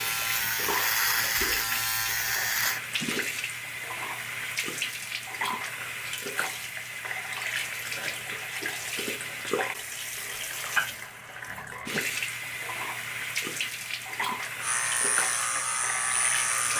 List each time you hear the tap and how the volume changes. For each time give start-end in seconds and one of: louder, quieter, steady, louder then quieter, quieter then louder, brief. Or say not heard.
0.0-16.7 steady.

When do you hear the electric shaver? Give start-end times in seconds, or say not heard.
0.0-2.8, 14.6-16.7.